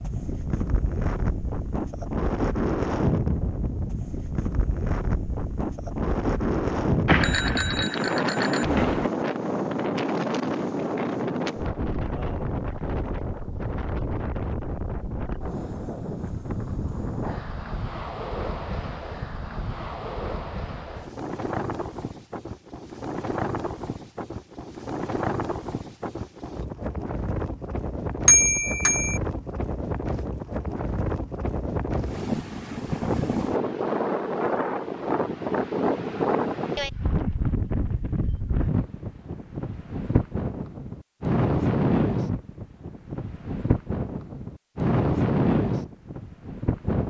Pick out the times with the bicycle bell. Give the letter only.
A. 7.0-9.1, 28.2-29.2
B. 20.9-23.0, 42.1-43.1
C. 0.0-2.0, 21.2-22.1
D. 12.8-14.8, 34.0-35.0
A.